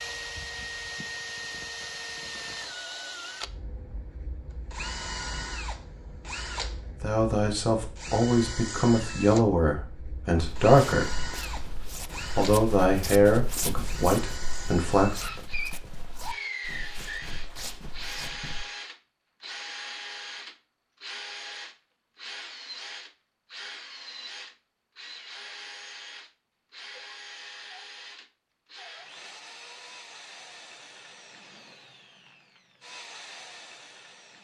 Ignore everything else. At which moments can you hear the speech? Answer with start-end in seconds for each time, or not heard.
7.0-11.3, 12.3-15.2.